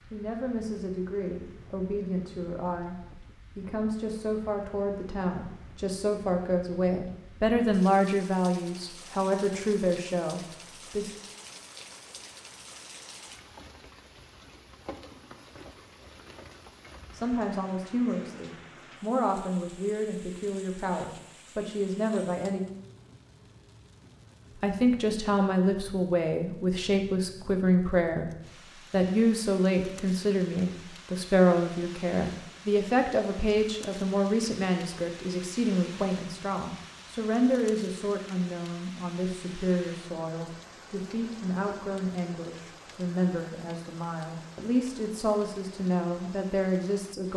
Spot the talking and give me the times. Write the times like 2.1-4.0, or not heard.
0.1-11.1, 17.1-22.6, 24.6-28.2, 28.9-47.3.